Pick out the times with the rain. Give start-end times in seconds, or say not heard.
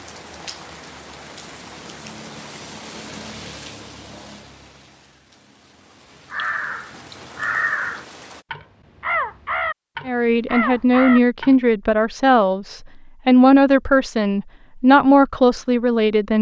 0.0-8.4.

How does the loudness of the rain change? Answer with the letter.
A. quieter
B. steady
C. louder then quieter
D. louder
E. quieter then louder
E.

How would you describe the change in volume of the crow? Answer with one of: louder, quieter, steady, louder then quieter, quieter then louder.
steady.